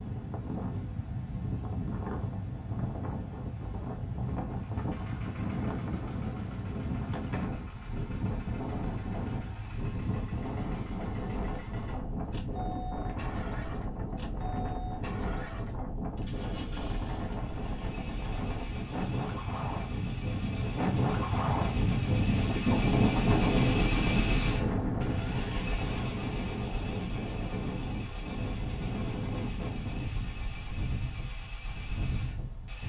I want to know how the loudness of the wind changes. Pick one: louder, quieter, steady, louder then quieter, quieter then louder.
louder then quieter.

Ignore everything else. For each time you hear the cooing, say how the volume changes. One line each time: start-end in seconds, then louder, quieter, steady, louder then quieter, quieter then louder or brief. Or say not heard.
not heard.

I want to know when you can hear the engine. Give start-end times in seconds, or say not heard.
4.5-32.8.